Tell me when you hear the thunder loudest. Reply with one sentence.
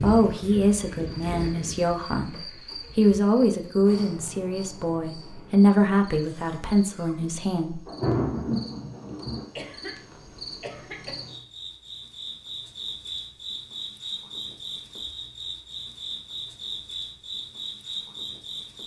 The loudest moment of the thunder is at 8 seconds.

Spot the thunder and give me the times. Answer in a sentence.
The thunder can be heard from 7.8 to 9.4 s.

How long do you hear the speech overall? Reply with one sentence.
You can hear the speech for 8 seconds altogether.